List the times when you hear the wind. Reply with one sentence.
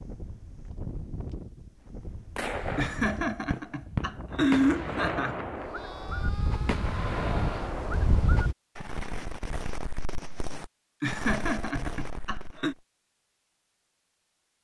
You can hear the wind from 0.0 to 8.6 s.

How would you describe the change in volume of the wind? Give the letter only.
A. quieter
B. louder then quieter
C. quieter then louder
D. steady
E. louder
E.